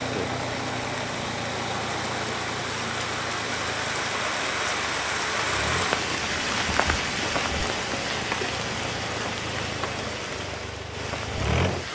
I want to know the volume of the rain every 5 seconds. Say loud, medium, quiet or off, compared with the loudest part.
loud, loud, medium.